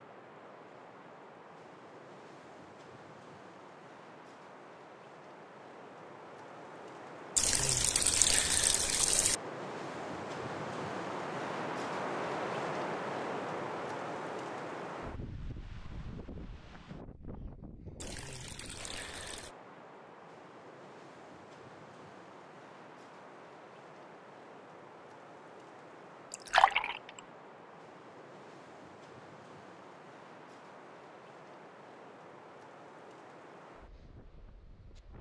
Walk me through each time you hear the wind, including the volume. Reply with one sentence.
The wind can be heard from 0.0 to 35.1 s, getting louder then quieter.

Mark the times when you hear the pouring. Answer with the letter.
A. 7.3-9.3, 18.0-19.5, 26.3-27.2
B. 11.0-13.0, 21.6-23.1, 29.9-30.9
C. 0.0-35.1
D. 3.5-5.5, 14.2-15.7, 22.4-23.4
A.